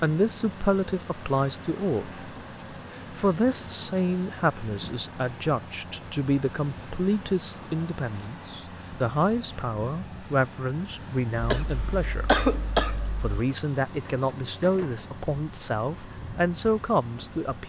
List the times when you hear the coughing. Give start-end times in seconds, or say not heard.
11.4-13.2.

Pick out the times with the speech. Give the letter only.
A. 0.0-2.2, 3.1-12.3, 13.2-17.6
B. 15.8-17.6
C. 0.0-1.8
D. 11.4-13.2
A.